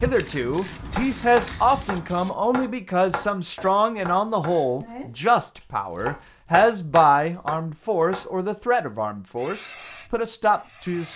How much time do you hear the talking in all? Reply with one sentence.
You can hear the talking for 11 seconds altogether.